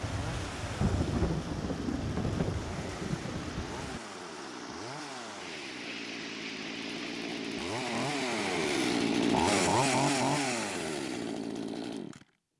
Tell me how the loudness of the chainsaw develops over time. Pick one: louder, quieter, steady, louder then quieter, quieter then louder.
louder.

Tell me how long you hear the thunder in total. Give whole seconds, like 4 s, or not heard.
4 s.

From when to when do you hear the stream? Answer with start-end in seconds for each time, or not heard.
0.0-9.5.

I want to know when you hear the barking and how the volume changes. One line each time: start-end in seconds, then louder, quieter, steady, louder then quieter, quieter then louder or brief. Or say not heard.
not heard.